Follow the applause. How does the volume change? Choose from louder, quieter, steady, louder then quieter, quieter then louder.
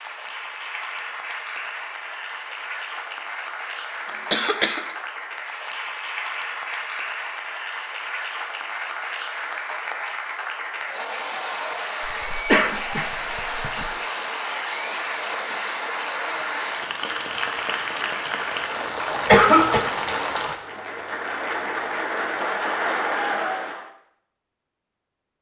louder.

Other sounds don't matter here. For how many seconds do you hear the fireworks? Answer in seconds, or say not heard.
not heard.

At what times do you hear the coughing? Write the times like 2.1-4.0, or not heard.
4.0-4.8, 12.1-13.9, 19.2-19.9.